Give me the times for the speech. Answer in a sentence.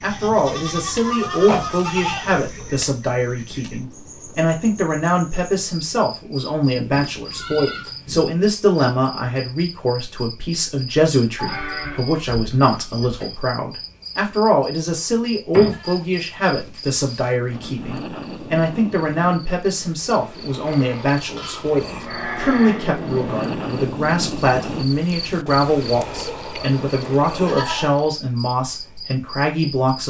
You can hear the speech from 0.0 to 30.0 s.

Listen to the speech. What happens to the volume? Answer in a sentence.
The loudness of the speech stays about the same.